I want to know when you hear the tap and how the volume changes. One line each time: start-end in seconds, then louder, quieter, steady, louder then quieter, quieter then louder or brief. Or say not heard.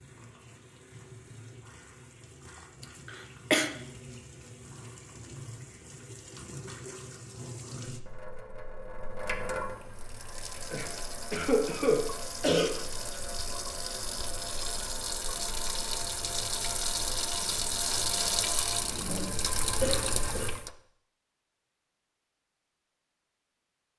0.0-20.7 louder.